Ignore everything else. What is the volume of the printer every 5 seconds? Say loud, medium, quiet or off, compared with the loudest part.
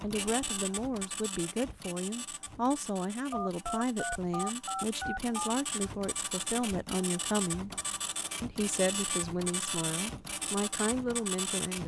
medium, loud, loud.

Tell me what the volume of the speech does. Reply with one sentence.
The loudness of the speech stays about the same.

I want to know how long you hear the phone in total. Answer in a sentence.
You can hear the phone for 2 seconds altogether.